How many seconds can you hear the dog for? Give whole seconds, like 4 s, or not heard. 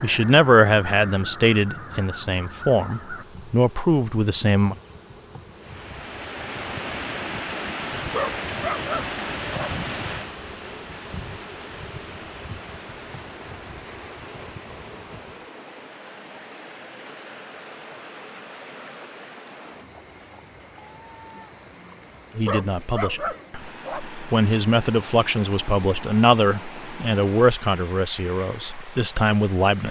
3 s.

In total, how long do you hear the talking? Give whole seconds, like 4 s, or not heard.
12 s.